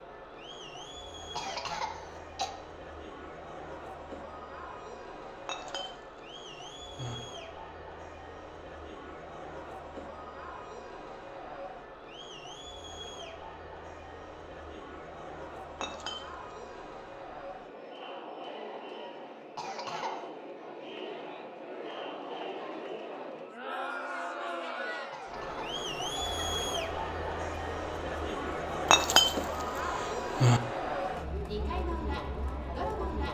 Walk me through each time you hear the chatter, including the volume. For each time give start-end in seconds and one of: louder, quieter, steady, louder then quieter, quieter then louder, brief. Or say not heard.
0.0-33.2 louder.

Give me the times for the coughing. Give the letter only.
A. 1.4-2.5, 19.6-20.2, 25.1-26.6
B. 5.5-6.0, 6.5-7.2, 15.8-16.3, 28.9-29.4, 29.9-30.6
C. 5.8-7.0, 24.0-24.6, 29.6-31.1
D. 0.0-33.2
A.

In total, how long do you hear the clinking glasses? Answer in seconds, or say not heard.
3 s.